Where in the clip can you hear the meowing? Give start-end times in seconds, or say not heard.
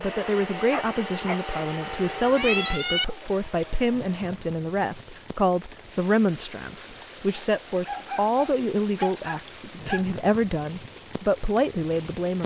1.5-3.0.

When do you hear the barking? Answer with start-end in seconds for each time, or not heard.
0.7-1.4, 7.3-10.1.